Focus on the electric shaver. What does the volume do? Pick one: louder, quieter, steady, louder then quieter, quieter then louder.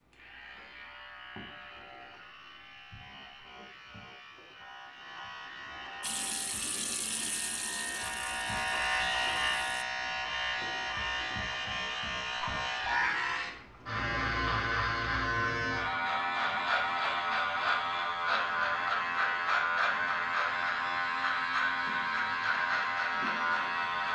louder.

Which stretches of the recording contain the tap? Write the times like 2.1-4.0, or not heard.
6.0-9.8.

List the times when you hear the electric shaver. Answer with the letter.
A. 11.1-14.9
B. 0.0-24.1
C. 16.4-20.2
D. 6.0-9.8
B.